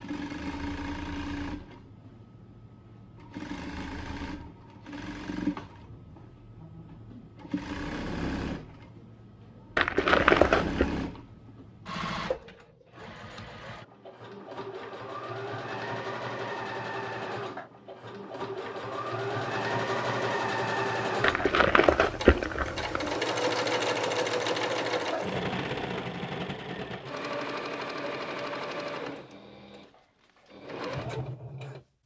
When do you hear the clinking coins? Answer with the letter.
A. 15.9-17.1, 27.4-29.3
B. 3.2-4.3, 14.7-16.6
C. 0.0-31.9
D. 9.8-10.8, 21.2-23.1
D.